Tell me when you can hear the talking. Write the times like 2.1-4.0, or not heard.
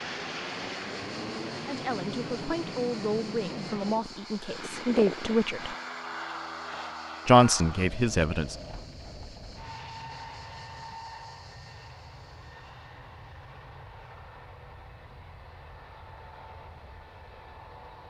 1.6-5.8, 7.2-8.6.